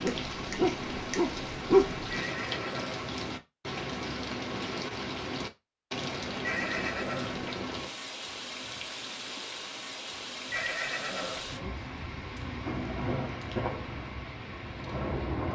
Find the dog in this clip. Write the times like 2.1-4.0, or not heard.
0.0-2.0.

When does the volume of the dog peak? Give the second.
2 s.